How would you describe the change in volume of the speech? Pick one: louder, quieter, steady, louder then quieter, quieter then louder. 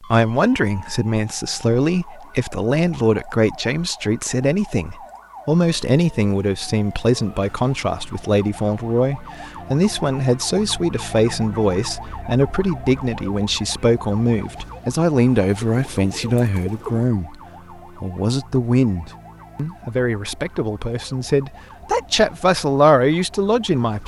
steady.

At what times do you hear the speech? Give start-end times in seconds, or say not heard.
0.0-17.4, 18.0-24.0.